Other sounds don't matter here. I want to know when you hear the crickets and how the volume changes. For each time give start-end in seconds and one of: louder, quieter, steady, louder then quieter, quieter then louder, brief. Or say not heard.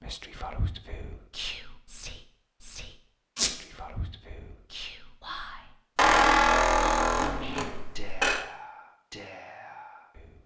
not heard.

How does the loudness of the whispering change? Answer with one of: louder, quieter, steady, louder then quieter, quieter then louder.
quieter.